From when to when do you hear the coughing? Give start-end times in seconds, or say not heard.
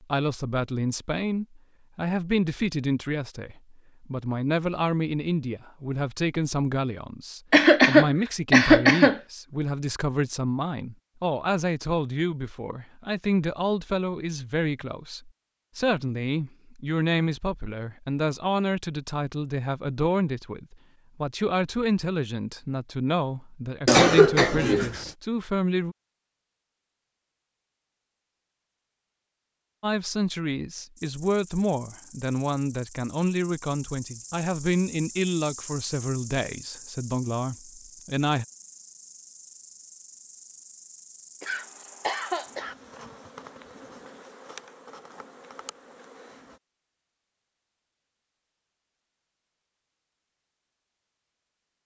7.5-9.2, 23.9-25.1, 41.4-42.8.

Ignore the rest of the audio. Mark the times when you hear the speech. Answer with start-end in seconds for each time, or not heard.
0.0-25.9, 29.8-38.5.